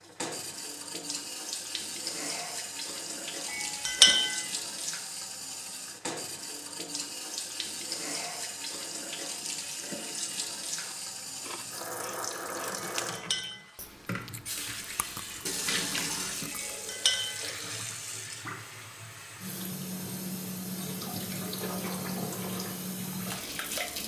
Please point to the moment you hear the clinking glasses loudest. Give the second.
4 s.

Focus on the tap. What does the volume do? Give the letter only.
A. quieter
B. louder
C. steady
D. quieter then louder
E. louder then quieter
C.